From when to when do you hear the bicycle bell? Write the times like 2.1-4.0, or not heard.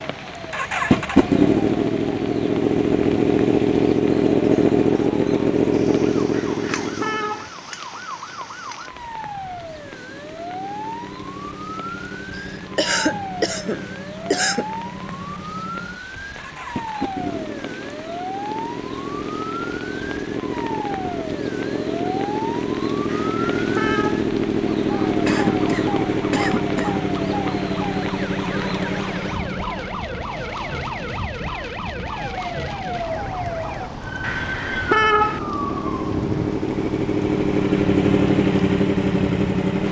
not heard.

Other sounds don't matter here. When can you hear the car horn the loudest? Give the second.
35 s.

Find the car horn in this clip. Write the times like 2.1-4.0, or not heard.
6.3-7.5, 23.1-24.2, 34.2-35.4.